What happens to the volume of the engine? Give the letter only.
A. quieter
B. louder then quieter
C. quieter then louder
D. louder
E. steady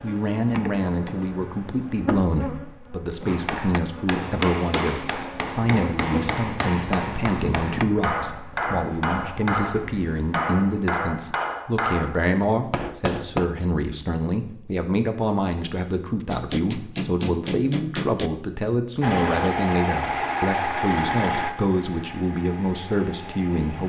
A.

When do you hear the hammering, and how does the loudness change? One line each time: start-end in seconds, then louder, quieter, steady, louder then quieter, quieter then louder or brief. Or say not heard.
3.2-13.4 steady
16.3-18.3 brief.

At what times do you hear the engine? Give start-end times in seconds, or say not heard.
19.0-23.8.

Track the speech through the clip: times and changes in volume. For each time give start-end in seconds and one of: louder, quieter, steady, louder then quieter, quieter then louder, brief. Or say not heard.
0.0-23.8 steady.